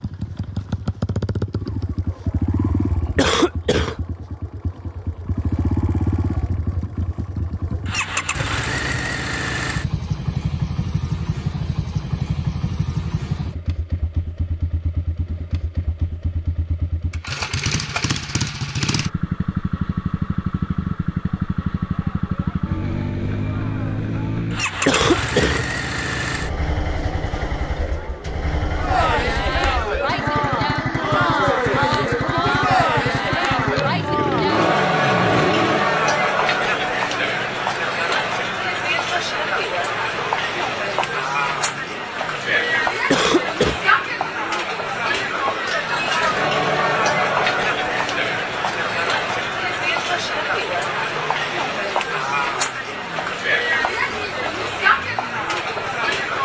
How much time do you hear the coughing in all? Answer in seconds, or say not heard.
2 s.